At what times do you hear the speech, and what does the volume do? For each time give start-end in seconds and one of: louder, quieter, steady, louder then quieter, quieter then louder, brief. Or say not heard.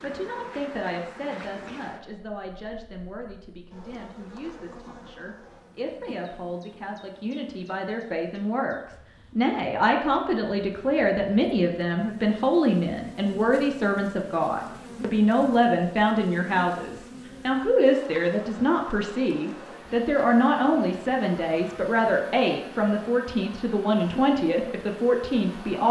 0.0-25.8 louder.